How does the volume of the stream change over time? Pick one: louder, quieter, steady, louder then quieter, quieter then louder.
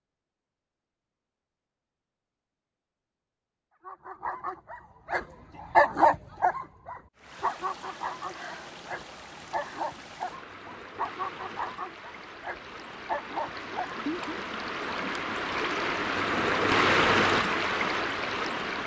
louder.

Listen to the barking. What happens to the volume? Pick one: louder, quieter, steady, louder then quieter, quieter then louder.
quieter.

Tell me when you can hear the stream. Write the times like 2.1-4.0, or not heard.
7.2-18.8.